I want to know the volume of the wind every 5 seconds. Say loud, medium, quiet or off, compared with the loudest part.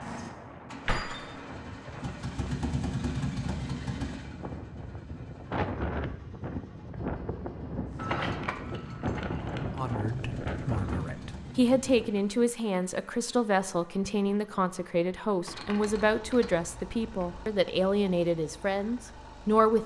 medium, loud, loud, off.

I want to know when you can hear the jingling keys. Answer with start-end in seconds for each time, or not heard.
0.8-1.4, 8.0-10.0, 15.4-17.4.